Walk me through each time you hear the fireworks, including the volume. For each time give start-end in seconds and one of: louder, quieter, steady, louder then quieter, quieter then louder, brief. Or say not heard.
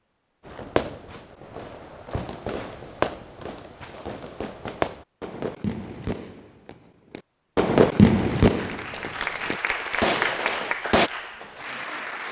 0.5-11.1 louder then quieter.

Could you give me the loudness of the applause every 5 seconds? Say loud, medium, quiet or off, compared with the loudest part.
off, loud, loud.